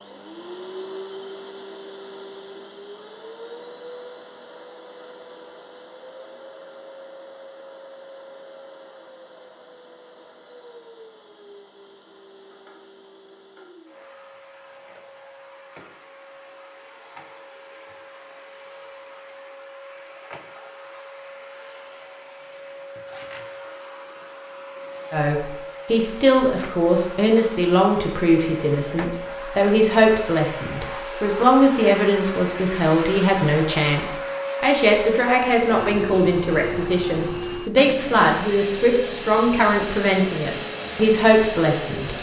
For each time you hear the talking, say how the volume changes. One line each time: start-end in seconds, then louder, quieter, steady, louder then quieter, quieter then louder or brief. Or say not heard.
25.1-42.1 steady.